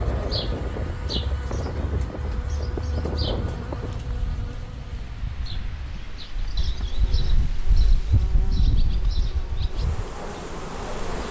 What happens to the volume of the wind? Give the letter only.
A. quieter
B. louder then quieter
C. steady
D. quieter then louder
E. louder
D.